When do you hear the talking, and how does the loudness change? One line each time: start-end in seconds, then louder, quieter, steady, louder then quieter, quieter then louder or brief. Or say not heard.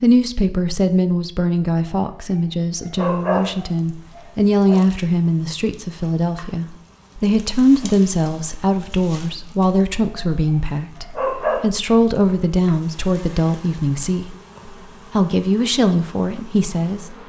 0.0-14.3 steady
15.1-17.1 brief.